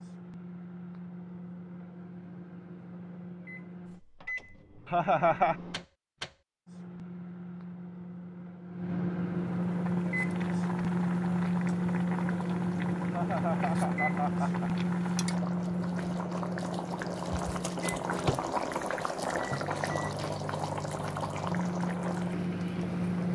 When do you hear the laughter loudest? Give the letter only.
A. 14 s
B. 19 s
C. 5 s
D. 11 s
C.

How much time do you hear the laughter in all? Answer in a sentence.
The laughter can be heard for 2 seconds in total.